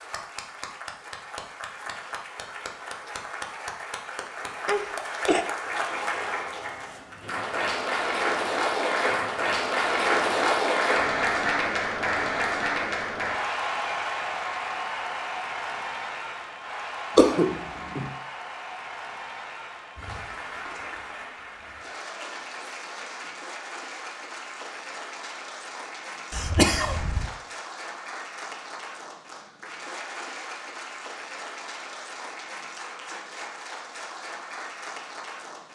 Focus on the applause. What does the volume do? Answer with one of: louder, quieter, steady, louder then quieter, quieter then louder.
louder then quieter.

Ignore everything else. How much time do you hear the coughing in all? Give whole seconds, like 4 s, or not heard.
3 s.